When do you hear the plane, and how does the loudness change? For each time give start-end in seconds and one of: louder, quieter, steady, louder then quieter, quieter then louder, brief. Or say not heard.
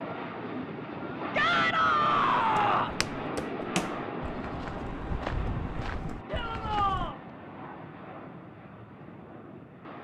0.0-10.0 quieter.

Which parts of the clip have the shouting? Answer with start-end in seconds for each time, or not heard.
1.3-3.0, 6.2-7.2.